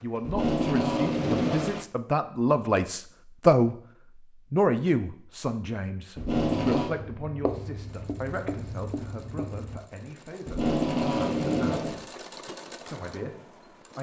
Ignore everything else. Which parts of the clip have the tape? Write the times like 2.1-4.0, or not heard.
0.2-1.8, 6.2-6.9, 10.4-12.0.